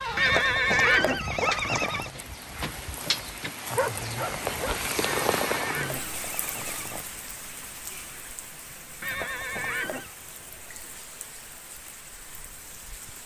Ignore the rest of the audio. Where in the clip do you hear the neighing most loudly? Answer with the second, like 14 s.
1 s.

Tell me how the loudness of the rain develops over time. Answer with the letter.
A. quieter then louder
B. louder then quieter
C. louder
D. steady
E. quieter
B.